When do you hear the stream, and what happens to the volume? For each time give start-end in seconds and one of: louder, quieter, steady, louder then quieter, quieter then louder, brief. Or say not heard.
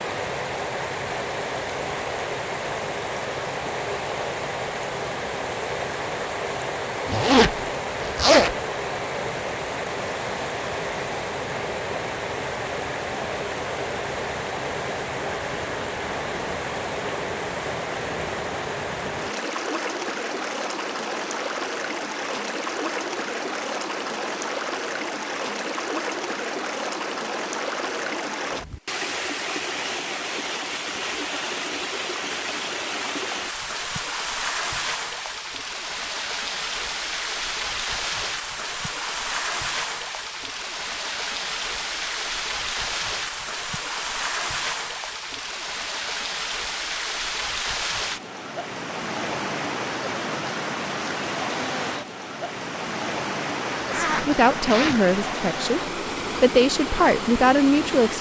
0.0-58.1 steady.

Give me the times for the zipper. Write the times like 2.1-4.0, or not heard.
7.0-8.6, 53.8-55.0.